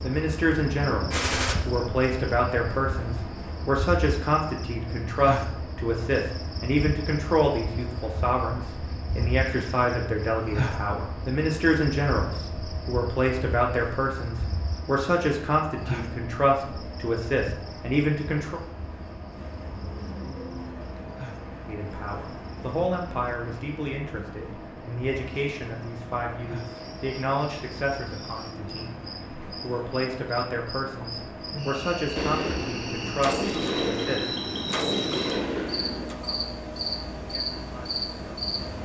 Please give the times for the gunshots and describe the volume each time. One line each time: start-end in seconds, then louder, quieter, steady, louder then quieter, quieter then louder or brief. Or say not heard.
1.1-1.6 brief
32.1-36.1 louder.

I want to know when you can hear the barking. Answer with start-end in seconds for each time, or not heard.
not heard.